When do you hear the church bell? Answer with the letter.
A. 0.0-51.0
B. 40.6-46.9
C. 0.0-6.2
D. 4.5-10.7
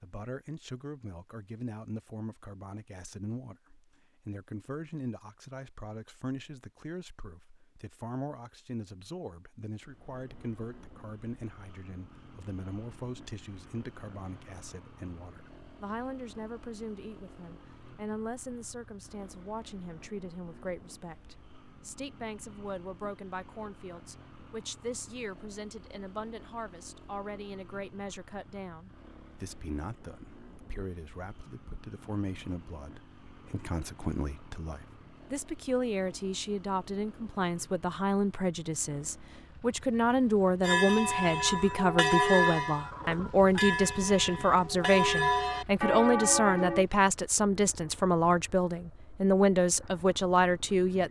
B.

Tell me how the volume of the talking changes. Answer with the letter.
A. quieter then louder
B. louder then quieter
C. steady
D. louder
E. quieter
D.